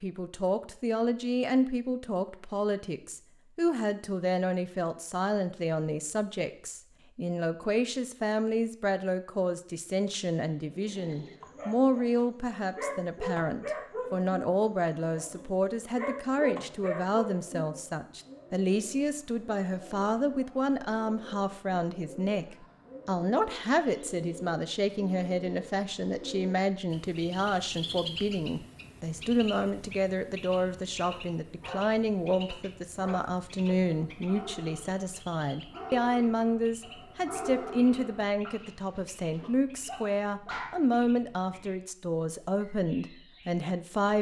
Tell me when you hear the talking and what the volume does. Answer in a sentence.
The talking can be heard from 0.0 to 44.1 s, at a steady volume.